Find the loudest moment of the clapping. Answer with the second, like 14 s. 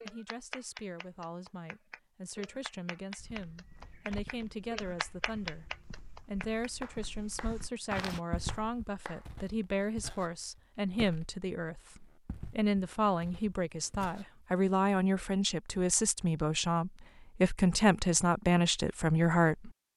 5 s.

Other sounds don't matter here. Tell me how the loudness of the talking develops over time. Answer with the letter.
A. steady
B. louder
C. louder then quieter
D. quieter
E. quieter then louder
B.